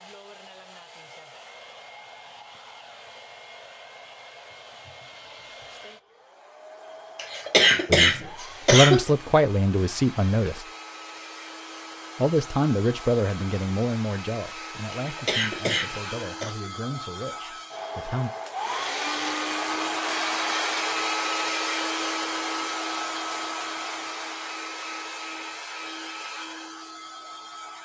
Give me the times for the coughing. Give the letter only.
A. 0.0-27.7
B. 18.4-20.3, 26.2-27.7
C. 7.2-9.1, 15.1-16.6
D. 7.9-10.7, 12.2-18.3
C.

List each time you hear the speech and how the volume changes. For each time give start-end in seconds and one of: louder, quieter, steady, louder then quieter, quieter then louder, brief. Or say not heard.
7.9-10.7 brief
12.2-18.3 quieter.